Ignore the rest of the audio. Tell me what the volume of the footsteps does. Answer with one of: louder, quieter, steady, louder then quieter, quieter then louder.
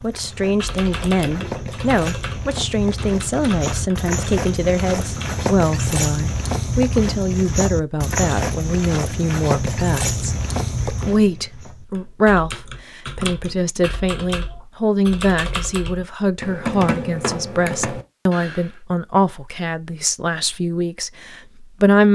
louder.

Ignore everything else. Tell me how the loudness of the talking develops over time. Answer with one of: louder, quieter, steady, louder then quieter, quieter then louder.
steady.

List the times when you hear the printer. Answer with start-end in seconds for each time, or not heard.
not heard.